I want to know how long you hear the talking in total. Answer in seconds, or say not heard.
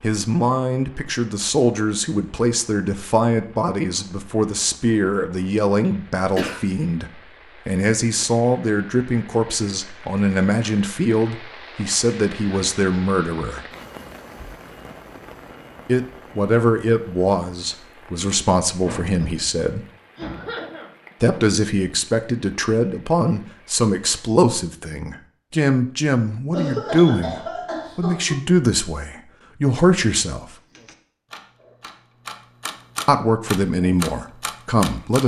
29 s.